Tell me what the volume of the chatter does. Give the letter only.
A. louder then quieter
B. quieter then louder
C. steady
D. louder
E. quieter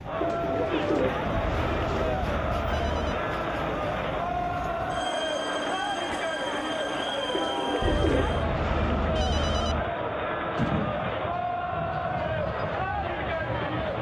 C.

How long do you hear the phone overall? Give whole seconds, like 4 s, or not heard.
4 s.